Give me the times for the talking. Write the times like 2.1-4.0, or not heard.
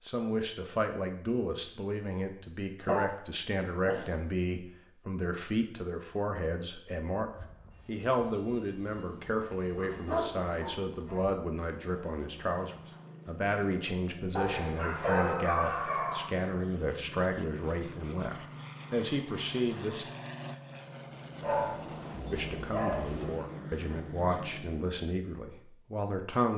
0.0-20.1, 22.3-26.5.